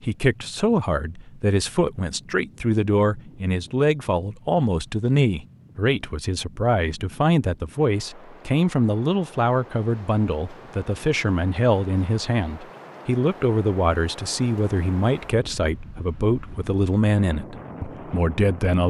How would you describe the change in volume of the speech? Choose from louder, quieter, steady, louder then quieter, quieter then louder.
steady.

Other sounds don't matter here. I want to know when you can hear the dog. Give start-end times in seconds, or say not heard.
not heard.